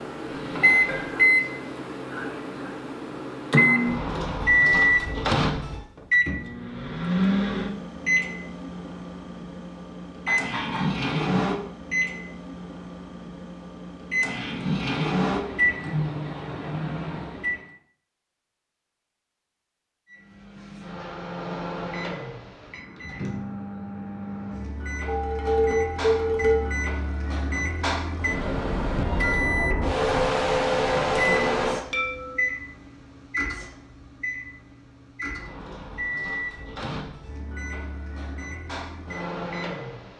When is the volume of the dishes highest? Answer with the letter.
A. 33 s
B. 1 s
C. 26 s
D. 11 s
C.